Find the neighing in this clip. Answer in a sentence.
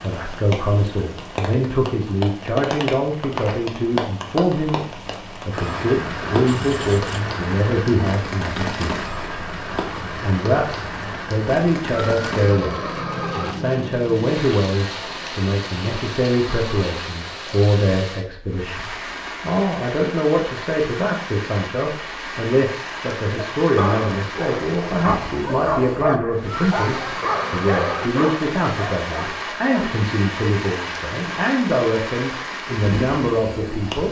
You can hear the neighing from 6.5 to 7.2 s, from 11.9 to 13.6 s and from 26.4 to 28.1 s.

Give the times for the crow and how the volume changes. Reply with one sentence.
The crow can't be heard in this clip.